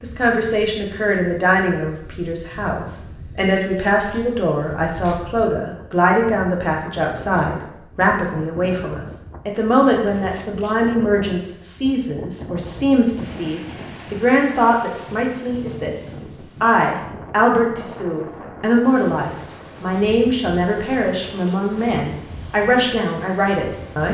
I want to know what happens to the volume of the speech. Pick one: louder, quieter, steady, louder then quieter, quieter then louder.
steady.